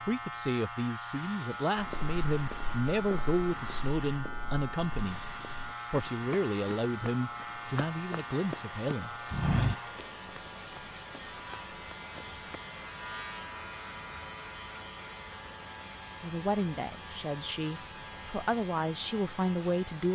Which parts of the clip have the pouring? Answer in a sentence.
The pouring can't be heard in this clip.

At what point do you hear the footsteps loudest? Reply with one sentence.
The volume of the footsteps peaks at 10 seconds.